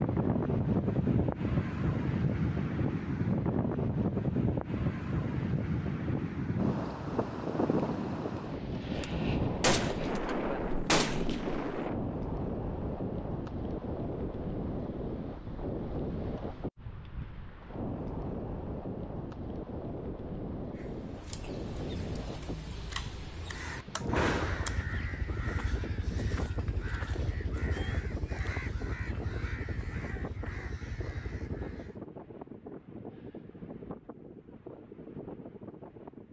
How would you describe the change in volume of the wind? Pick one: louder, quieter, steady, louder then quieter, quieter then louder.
quieter.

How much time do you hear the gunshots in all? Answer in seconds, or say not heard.
5 s.